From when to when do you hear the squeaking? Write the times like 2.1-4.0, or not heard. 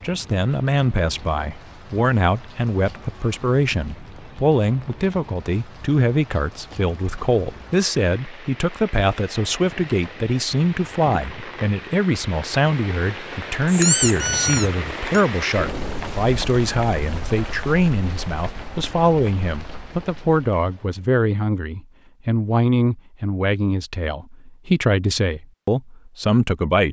13.7-15.2.